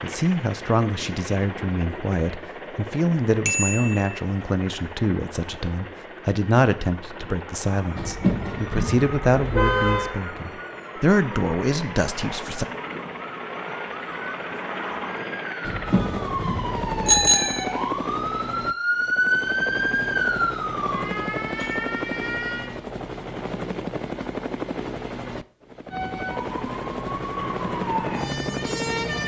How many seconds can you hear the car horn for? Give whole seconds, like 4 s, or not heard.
4 s.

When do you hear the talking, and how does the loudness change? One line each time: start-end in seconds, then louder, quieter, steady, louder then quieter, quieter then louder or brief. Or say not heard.
0.0-12.7 steady.